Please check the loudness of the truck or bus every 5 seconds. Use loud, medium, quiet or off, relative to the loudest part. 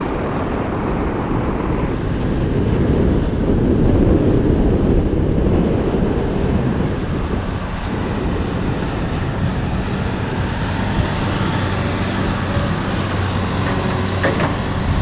medium, medium, loud.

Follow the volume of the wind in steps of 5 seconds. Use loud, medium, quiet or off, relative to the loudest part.
loud, loud, medium.